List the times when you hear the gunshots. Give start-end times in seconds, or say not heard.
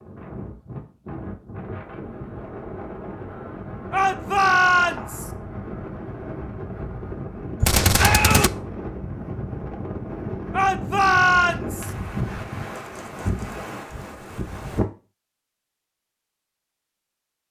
7.6-8.5.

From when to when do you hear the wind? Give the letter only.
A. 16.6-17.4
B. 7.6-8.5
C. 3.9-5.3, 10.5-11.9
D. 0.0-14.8
D.